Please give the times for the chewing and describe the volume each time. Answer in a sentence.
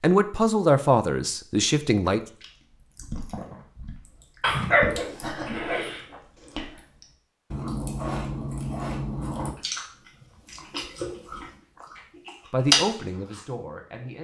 You can hear the chewing from 2.1 to 13.4 s, getting louder.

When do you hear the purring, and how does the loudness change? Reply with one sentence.
The purring can't be heard in this clip.